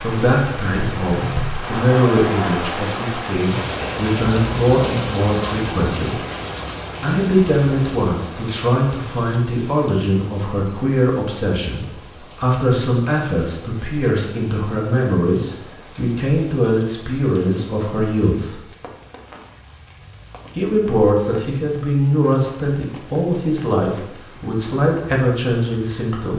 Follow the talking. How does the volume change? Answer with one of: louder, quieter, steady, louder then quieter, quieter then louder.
steady.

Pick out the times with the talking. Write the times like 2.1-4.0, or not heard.
0.0-6.2, 7.0-18.6, 20.6-26.3.